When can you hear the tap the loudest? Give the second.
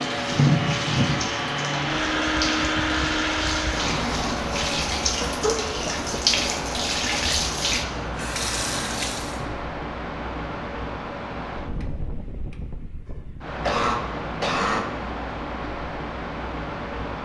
7 s.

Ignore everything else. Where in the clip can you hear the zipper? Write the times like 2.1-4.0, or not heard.
not heard.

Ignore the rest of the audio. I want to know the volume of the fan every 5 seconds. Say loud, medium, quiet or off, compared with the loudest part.
loud, medium, medium, medium.